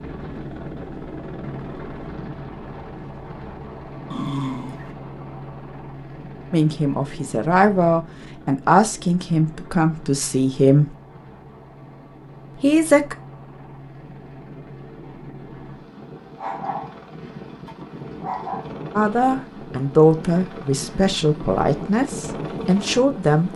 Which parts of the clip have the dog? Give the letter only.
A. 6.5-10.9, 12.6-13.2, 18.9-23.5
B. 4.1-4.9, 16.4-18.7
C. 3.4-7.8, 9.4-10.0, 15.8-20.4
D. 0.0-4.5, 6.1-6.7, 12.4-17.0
B.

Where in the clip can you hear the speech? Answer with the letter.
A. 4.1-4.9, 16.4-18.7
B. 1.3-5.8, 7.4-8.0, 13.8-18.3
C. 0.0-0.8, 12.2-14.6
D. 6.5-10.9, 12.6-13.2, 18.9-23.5
D.